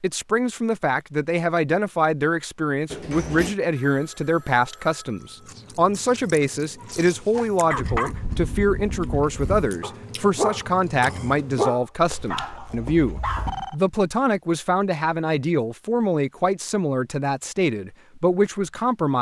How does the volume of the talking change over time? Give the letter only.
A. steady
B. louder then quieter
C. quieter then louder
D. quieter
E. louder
A.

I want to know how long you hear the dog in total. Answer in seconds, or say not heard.
6 s.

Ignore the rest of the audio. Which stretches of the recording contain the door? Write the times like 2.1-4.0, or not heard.
2.9-3.5.